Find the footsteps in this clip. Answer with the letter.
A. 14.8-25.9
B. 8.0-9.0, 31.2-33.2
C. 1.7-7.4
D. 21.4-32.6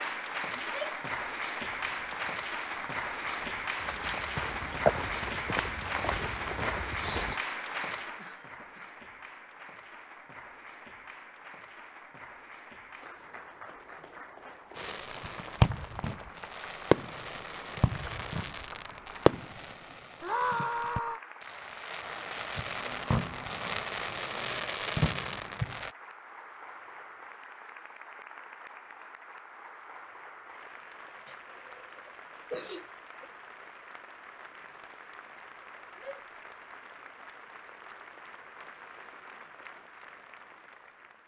C.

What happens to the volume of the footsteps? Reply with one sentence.
The loudness of the footsteps goes up, then down.